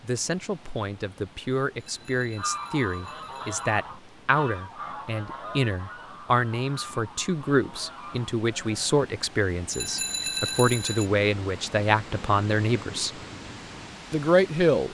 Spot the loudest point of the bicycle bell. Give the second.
10 s.